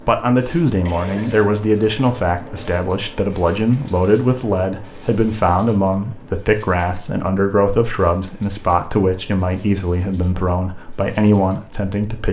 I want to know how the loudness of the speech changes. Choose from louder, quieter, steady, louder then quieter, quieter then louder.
steady.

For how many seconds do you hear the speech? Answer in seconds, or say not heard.
12 s.